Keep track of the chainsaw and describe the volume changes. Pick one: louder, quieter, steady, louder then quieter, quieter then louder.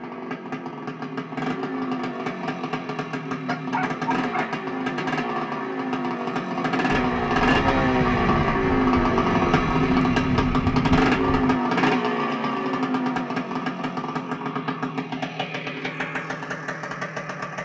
louder then quieter.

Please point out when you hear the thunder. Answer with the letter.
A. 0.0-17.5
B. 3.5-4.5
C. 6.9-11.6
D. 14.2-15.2
C.